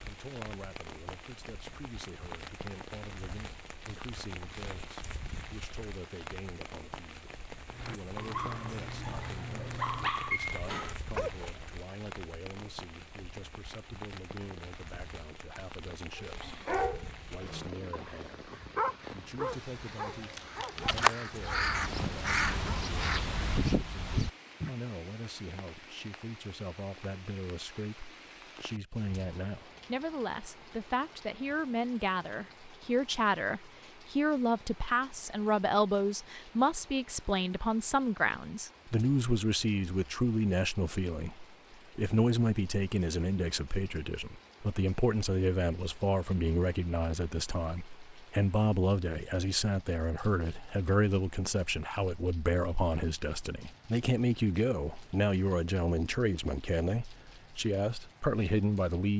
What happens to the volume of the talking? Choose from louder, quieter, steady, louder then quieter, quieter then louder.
louder.